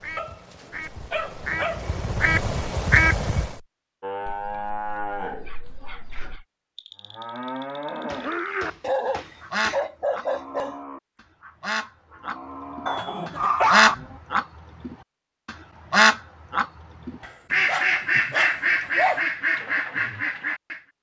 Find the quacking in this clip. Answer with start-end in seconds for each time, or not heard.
0.0-3.5, 9.5-20.8.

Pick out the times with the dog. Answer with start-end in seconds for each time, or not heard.
0.1-1.9, 4.2-6.5, 8.8-10.8, 12.8-13.9, 17.2-19.2.